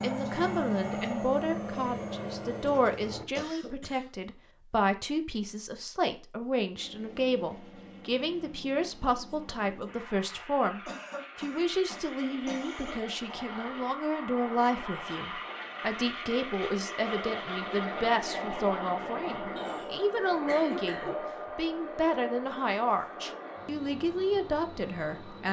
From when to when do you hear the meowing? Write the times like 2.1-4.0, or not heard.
not heard.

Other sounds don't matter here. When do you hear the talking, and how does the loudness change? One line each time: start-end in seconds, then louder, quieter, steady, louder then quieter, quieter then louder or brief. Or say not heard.
0.0-25.4 steady.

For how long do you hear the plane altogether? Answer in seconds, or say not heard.
22 s.